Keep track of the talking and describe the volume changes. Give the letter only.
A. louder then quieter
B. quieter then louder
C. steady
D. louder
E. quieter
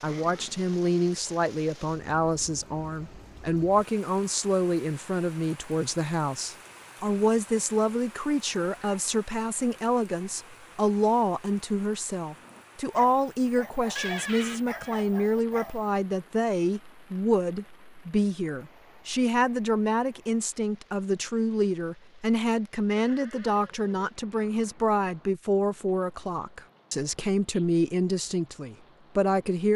C.